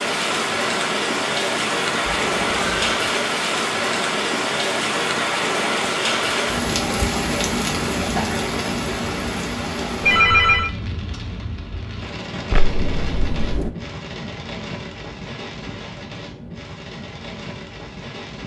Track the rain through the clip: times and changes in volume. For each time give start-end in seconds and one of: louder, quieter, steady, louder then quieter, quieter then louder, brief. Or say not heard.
0.0-18.4 quieter.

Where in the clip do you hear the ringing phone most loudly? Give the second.
10 s.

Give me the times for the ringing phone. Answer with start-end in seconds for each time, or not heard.
2.0-3.0, 10.0-10.7, 12.5-13.7.